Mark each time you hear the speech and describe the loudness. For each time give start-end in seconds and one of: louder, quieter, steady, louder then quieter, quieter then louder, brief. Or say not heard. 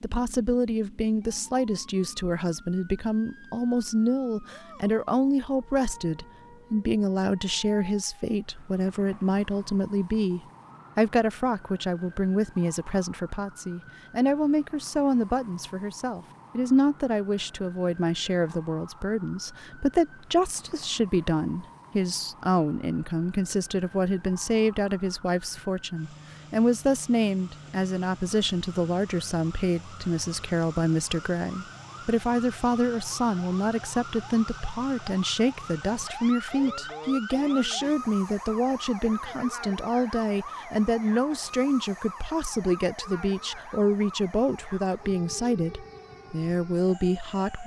0.0-47.6 steady.